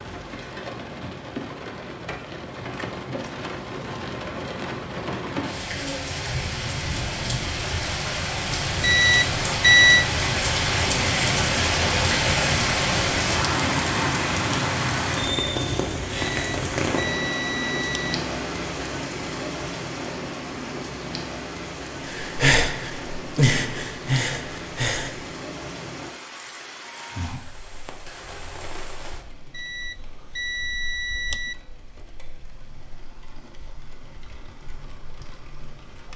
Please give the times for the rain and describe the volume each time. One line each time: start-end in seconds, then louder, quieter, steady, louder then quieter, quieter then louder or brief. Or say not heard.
0.0-36.1 louder then quieter.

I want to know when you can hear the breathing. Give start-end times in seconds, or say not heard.
22.1-25.4.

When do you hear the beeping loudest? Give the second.
10 s.